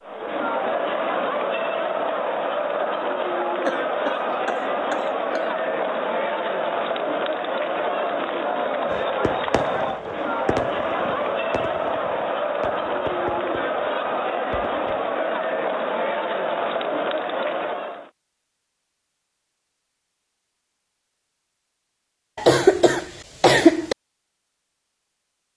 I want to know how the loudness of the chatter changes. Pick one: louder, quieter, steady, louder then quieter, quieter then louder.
steady.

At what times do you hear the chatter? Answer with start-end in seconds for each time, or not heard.
0.0-18.1.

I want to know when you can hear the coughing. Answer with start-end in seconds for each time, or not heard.
3.6-5.5, 22.4-23.9.